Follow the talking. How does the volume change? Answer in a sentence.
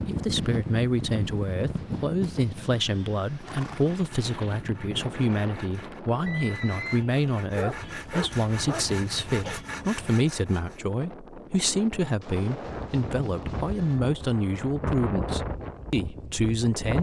The loudness of the talking stays about the same.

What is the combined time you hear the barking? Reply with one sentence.
The barking can be heard for 2 seconds in total.